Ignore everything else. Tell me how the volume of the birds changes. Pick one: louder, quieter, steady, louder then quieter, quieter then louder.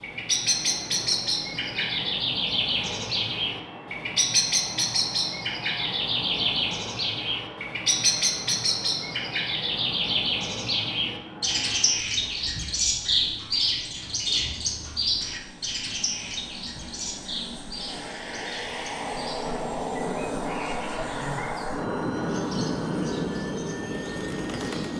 quieter.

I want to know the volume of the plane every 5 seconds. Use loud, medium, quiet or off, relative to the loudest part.
quiet, quiet, quiet, medium, loud.